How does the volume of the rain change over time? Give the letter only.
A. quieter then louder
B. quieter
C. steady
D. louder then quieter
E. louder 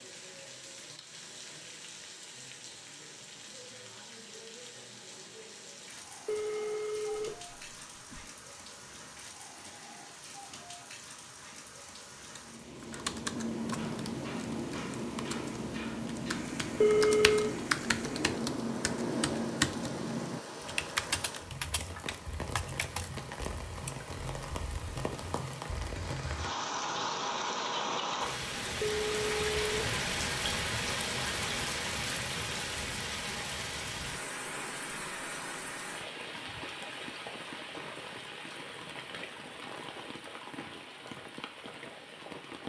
D.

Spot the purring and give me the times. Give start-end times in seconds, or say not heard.
not heard.